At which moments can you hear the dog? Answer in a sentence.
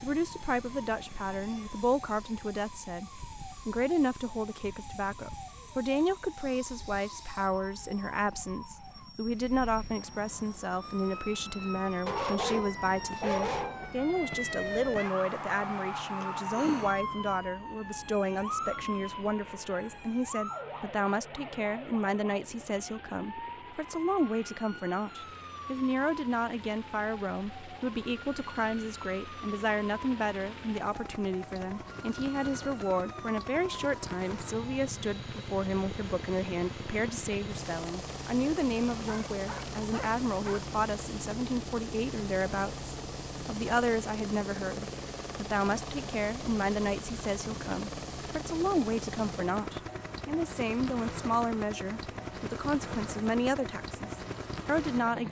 You can hear the dog from 12.1 to 13.9 s and from 39.0 to 40.7 s.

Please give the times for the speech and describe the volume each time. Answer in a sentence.
You can hear the speech from 0.0 to 55.2 s, at a steady volume.